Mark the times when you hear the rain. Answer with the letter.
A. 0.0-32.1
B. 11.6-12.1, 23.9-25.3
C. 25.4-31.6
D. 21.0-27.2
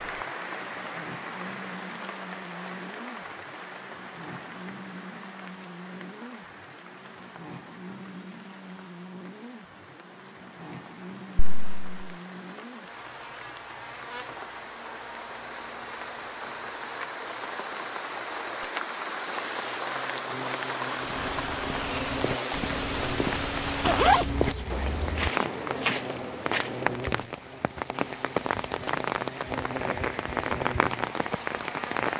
A.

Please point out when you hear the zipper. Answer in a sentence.
The zipper can be heard from 11.6 to 12.1 s and from 23.9 to 25.3 s.